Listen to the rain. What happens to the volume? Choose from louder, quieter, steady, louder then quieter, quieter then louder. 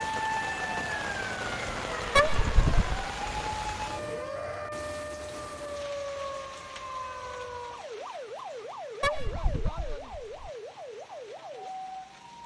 quieter.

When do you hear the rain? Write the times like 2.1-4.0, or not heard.
0.0-12.4.